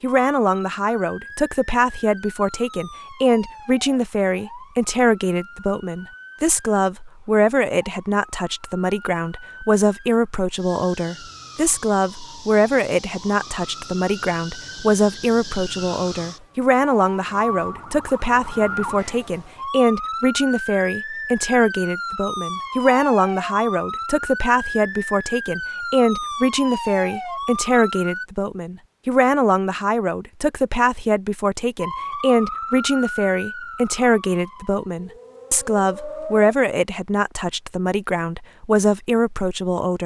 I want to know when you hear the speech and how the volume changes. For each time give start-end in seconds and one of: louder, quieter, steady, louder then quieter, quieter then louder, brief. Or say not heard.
0.0-40.0 steady.